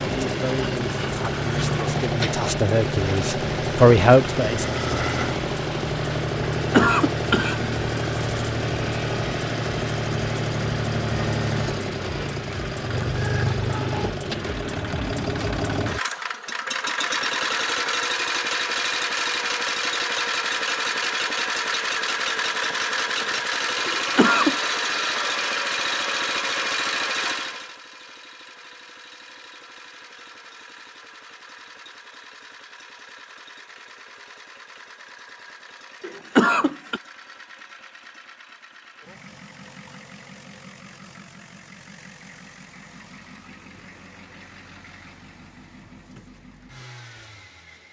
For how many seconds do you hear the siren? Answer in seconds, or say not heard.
not heard.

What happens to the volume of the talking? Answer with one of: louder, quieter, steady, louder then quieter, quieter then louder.
louder.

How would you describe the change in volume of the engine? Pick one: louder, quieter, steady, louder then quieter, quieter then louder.
quieter.